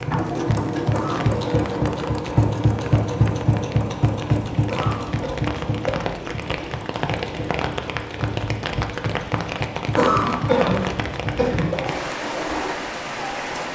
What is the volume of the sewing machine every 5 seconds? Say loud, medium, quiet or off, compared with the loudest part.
loud, medium, medium.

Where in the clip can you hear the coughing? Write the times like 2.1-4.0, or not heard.
0.9-1.7, 4.7-5.3, 9.9-11.8.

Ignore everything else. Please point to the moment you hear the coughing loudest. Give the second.
10 s.